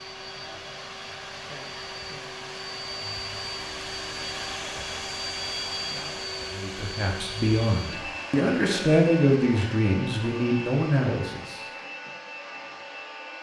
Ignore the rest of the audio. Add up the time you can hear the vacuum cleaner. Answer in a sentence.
The vacuum cleaner can be heard for 13 seconds in total.